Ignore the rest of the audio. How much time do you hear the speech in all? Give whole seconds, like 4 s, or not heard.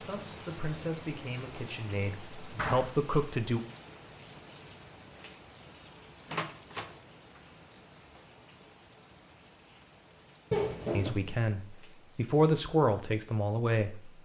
7 s.